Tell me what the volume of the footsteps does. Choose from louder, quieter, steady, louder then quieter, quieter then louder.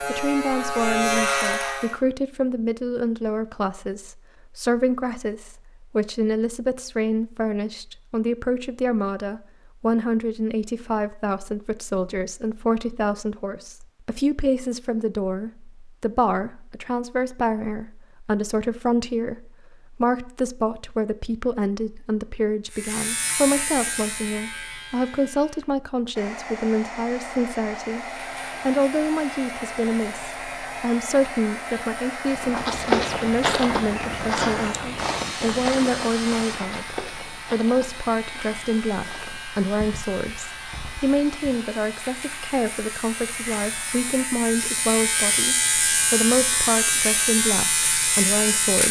quieter.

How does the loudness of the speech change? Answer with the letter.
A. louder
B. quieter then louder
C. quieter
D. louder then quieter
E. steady
E.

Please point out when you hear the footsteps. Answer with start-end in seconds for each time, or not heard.
32.2-41.6.